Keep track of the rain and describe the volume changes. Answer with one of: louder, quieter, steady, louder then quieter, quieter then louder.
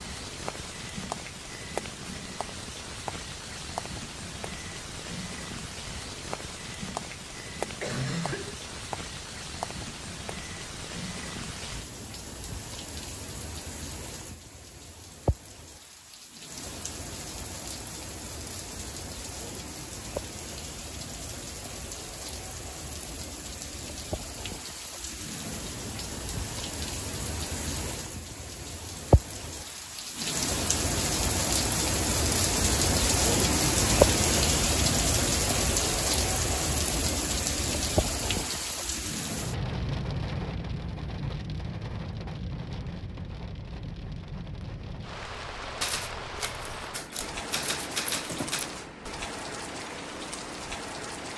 louder then quieter.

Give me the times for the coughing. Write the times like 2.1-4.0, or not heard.
7.8-8.6.